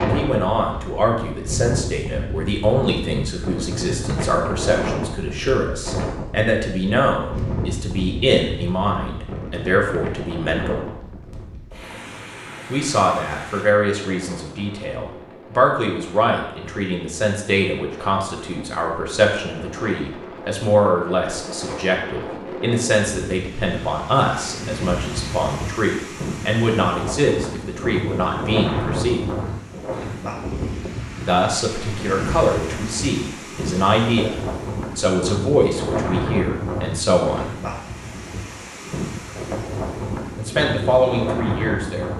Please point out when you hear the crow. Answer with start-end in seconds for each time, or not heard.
not heard.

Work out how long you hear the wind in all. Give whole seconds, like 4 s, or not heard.
42 s.